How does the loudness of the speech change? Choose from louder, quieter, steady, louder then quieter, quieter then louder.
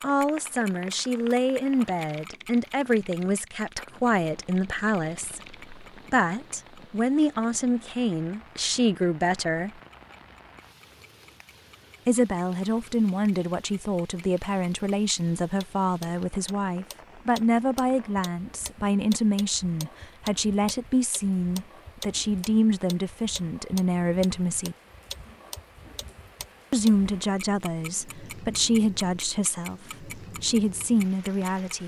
steady.